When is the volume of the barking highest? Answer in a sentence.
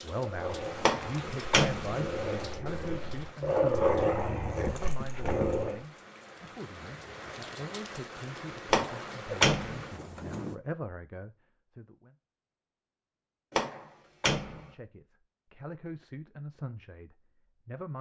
The loudest moment of the barking is at 4 seconds.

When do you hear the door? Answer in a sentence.
You can hear the door from 0.8 to 1.9 s, from 8.7 to 9.8 s and from 13.5 to 14.7 s.